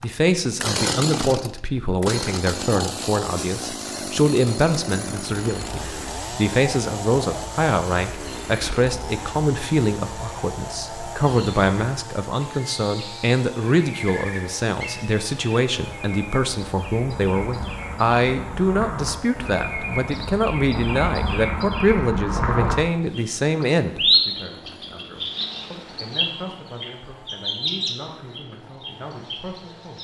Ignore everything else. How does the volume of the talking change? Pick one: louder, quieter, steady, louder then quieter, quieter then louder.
quieter.